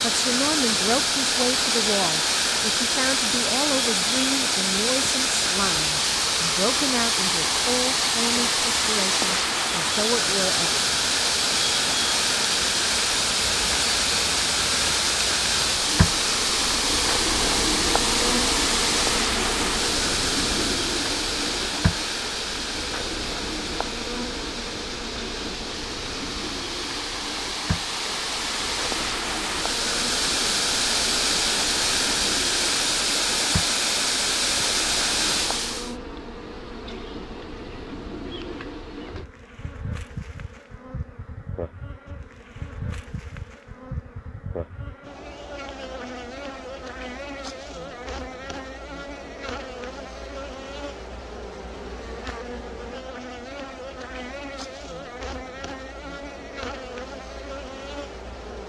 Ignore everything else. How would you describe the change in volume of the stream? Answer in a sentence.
The loudness of the stream goes down, then up.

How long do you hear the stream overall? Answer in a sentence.
You can hear the stream for 36 seconds altogether.